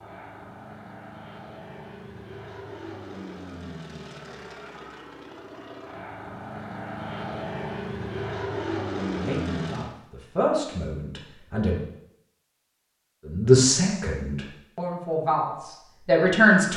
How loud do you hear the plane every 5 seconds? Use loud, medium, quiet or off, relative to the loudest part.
medium, loud, off, off.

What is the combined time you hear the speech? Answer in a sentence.
The speech can be heard for 6 seconds in total.